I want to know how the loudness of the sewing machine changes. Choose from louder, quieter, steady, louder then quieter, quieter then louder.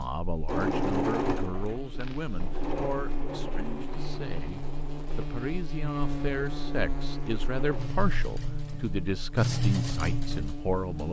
quieter then louder.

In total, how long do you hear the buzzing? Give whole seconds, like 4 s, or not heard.
11 s.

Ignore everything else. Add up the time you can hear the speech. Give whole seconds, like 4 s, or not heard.
11 s.